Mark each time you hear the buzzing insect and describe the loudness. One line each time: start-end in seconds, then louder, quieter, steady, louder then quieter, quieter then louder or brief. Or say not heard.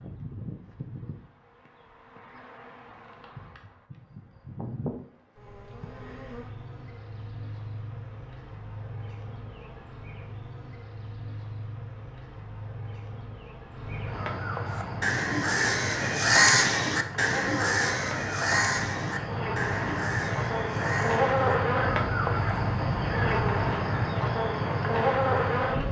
0.0-25.8 louder.